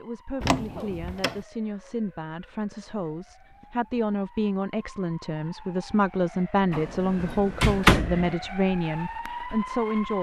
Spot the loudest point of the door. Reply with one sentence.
The loudest moment of the door is at 8 seconds.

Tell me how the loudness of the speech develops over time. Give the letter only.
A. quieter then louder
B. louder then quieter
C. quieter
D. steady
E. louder
E.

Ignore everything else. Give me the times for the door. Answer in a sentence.
The door can be heard from 0.4 to 1.4 s and from 6.7 to 8.3 s.